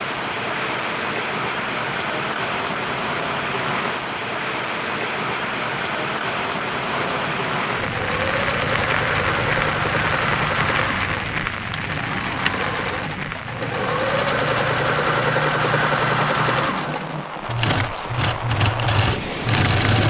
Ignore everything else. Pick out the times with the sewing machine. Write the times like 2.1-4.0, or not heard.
6.9-20.0.